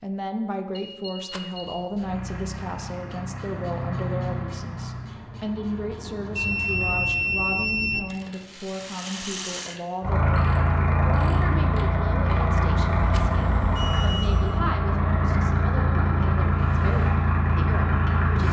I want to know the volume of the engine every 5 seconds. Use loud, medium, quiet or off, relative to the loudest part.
medium, quiet, loud, loud.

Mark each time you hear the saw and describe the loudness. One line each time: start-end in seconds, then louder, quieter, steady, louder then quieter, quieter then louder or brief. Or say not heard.
not heard.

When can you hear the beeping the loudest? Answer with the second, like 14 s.
7 s.